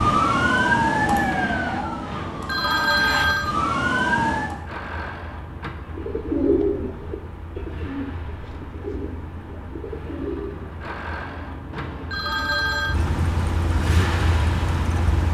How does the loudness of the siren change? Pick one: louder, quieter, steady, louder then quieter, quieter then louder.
quieter then louder.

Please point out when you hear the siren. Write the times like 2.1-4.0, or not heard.
0.0-4.6.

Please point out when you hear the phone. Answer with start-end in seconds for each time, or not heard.
2.1-3.5, 11.7-12.9.